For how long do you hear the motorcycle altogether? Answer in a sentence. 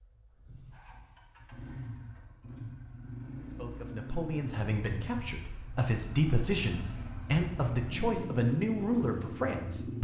The motorcycle can be heard for 10 seconds in total.